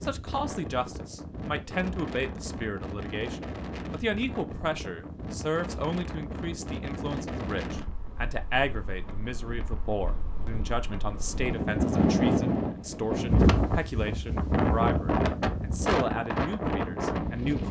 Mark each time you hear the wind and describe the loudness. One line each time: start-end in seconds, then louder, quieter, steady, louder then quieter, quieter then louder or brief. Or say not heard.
0.0-17.6 louder.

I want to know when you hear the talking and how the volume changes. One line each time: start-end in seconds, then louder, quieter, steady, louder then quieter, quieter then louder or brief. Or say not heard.
0.0-17.6 steady.